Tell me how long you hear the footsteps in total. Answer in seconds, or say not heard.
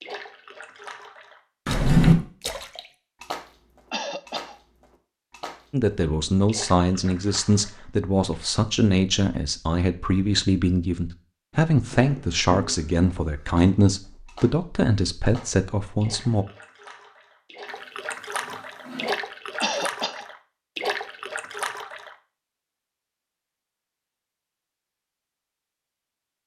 not heard.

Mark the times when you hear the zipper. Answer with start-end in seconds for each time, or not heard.
not heard.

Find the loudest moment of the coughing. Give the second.
20 s.